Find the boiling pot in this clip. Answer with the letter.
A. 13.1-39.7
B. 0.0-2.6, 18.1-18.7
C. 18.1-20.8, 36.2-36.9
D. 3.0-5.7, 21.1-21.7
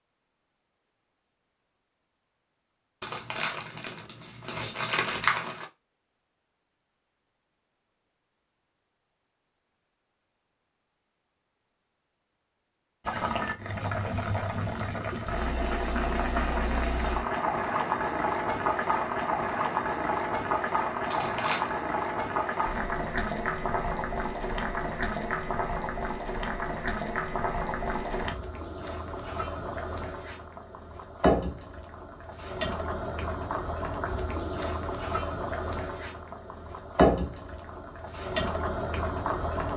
A.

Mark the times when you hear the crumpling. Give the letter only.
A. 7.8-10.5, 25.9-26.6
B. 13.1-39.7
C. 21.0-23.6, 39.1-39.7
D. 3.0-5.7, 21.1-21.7
D.